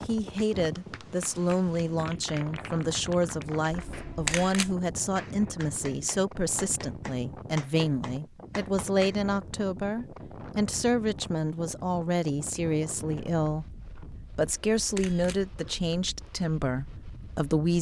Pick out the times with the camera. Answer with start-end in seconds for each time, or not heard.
3.7-4.8, 14.4-15.4.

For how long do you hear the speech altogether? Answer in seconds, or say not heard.
17 s.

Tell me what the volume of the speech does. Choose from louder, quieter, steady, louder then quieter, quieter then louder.
steady.